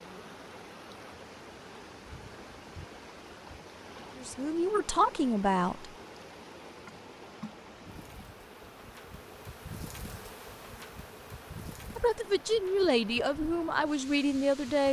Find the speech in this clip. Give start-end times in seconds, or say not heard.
4.2-5.9, 11.9-14.8.